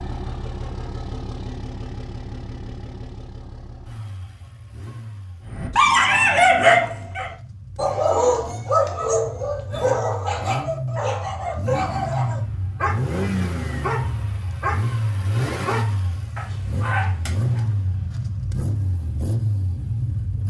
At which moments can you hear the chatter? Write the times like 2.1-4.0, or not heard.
not heard.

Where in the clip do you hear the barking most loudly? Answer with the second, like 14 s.
7 s.